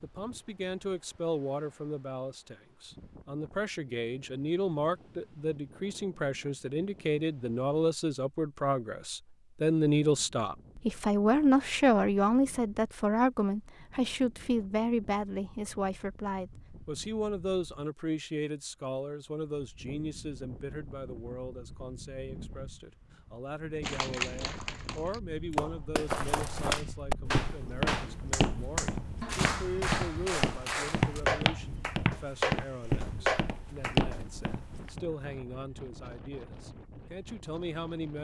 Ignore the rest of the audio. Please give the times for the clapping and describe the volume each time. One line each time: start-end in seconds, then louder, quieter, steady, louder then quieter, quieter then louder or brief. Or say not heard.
23.8-34.2 louder.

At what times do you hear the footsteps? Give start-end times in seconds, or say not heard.
26.1-35.0.